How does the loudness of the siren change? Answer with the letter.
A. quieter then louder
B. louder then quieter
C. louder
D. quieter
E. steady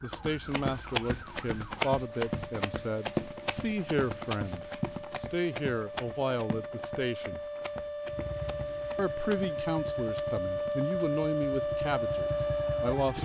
C.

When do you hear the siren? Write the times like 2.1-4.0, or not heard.
0.0-13.2.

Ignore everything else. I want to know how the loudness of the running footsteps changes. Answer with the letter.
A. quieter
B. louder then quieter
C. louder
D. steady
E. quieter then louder
A.